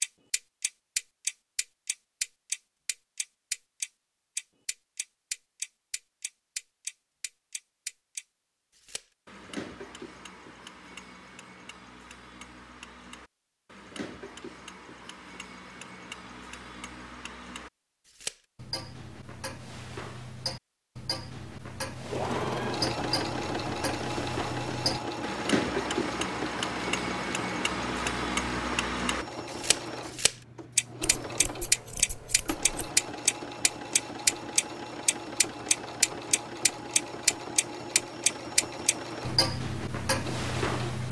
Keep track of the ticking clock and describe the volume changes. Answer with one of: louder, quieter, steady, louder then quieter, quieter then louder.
quieter then louder.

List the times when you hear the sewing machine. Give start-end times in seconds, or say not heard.
21.9-41.0.